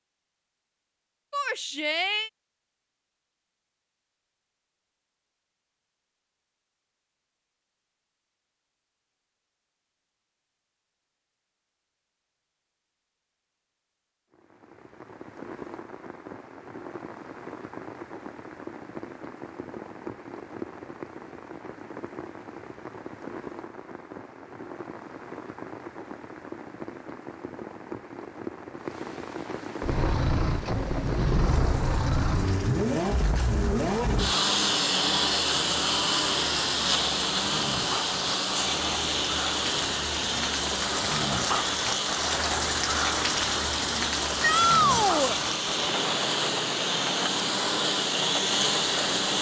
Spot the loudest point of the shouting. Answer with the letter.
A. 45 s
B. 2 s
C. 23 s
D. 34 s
A.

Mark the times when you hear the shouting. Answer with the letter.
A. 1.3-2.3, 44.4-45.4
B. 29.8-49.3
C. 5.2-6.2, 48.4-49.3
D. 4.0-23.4
A.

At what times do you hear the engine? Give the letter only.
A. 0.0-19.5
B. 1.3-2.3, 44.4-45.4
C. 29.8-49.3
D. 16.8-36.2
C.